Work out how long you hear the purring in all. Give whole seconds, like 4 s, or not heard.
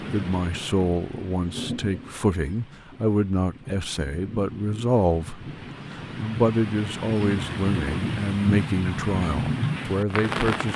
not heard.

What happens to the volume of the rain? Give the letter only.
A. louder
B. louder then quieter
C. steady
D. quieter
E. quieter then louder
E.